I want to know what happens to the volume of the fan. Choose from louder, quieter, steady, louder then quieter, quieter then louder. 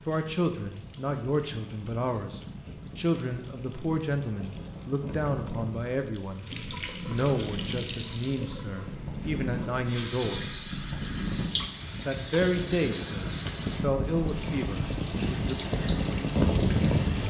louder.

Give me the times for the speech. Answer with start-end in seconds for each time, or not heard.
0.1-6.5, 7.0-10.4, 12.1-15.6.